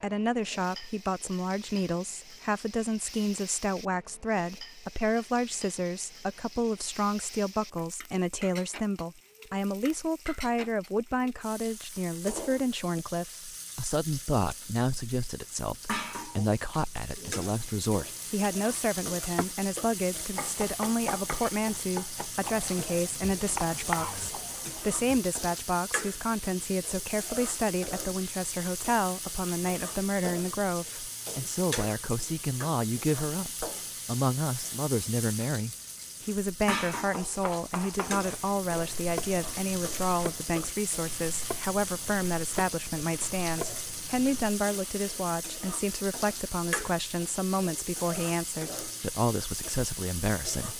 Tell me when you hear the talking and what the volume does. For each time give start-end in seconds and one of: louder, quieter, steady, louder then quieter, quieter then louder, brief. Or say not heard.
0.0-50.7 steady.